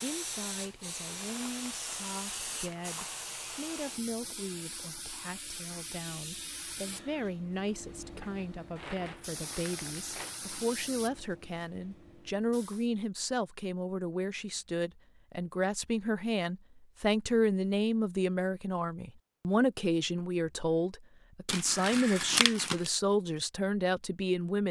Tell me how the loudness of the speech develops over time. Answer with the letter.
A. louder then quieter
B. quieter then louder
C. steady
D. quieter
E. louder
E.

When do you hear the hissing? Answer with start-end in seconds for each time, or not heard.
0.0-12.9.